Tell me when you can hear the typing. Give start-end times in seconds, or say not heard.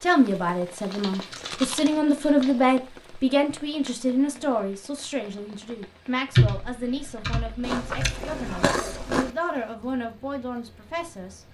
0.8-2.5, 6.3-8.2.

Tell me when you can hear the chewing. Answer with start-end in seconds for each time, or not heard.
1.3-2.0, 7.6-9.3.